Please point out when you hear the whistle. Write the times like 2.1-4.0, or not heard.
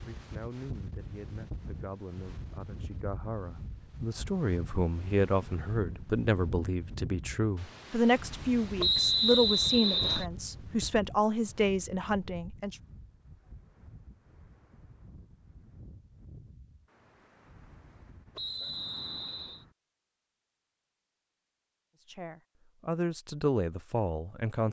8.8-10.2, 18.4-19.6.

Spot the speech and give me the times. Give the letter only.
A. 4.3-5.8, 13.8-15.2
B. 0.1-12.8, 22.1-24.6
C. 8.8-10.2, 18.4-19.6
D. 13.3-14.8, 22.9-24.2
B.